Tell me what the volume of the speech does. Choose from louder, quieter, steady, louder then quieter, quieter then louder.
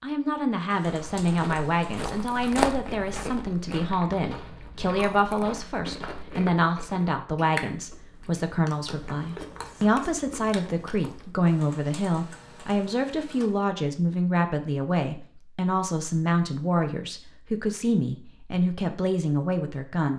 steady.